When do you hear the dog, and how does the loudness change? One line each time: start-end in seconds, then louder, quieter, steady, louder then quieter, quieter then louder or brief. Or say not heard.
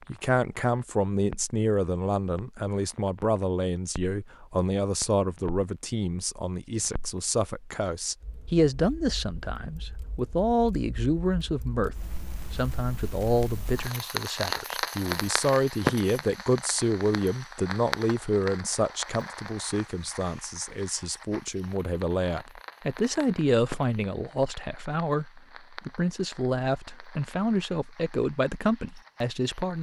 not heard.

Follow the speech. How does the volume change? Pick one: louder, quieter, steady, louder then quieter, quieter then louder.
steady.